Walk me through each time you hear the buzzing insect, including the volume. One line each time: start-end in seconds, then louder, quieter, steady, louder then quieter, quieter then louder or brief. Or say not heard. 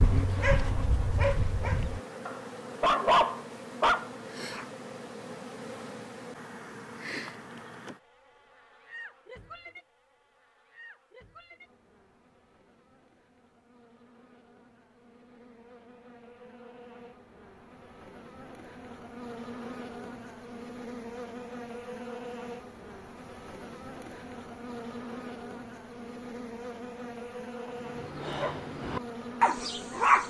0.0-30.2 quieter then louder.